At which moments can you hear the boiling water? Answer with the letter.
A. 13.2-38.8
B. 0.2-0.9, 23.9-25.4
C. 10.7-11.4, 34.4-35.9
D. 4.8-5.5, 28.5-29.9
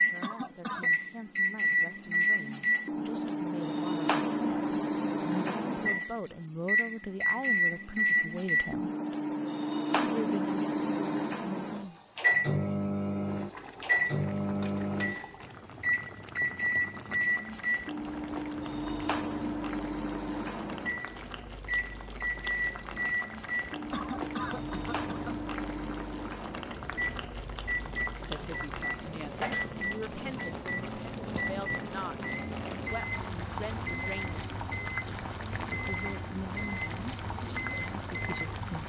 A.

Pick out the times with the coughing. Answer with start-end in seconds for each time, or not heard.
0.2-0.9, 23.9-25.4.